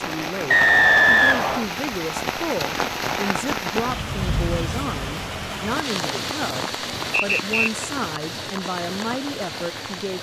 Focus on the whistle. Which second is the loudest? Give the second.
1 s.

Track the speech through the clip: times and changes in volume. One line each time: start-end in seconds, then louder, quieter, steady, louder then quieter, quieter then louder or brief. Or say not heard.
0.0-10.1 steady.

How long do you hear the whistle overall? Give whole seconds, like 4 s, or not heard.
2 s.